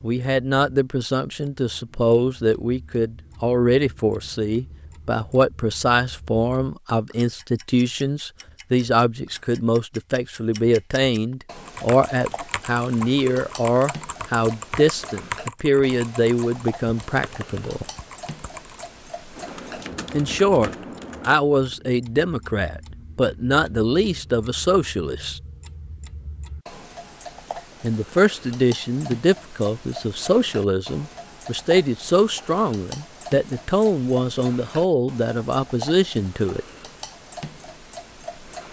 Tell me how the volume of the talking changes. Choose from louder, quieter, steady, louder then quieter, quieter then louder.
steady.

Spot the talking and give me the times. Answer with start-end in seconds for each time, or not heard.
0.0-17.9, 20.1-25.4, 27.8-36.6.